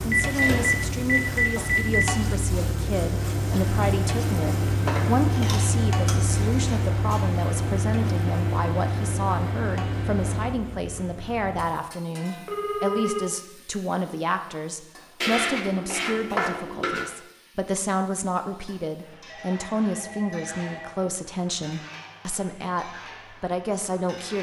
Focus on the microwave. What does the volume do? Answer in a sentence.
The loudness of the microwave stays about the same.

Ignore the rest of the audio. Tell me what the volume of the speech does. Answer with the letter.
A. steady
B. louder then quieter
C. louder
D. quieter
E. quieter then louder
A.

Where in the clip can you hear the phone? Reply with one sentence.
The phone can be heard from 0.1 to 2.0 s, from 12.4 to 13.2 s and from 19.2 to 20.9 s.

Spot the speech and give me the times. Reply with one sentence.
The speech can be heard from 0.0 to 24.3 s.